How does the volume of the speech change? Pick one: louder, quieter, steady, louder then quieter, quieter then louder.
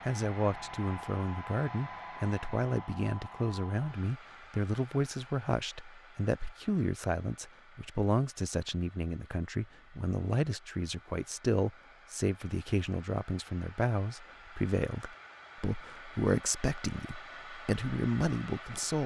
steady.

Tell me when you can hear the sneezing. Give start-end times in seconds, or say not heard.
not heard.